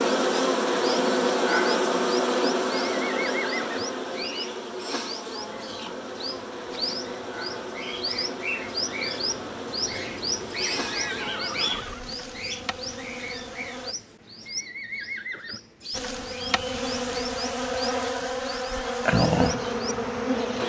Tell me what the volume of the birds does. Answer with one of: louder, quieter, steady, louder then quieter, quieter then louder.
louder then quieter.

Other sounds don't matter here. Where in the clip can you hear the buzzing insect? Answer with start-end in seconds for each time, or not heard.
0.0-13.9, 15.9-20.6.